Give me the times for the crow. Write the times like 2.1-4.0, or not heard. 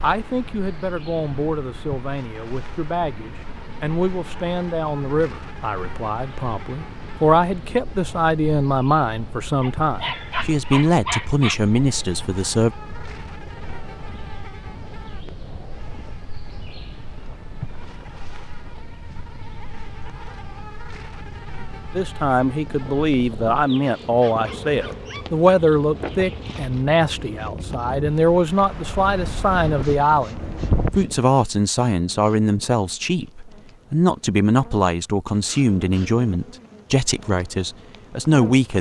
not heard.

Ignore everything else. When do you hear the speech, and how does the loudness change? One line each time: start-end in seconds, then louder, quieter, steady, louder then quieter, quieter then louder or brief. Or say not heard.
0.0-12.7 louder
21.9-38.7 steady.